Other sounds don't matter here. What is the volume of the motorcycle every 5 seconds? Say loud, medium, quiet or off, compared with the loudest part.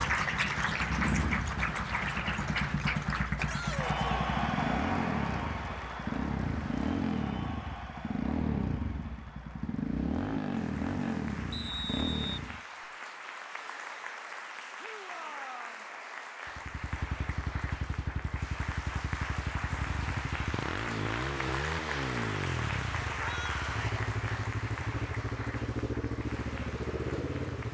loud, loud, loud, medium, loud, loud.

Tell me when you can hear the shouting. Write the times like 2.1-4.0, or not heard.
3.4-4.2, 14.8-15.8, 23.2-24.0.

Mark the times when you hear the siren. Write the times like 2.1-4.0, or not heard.
not heard.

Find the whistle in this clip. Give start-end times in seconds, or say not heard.
11.5-12.9.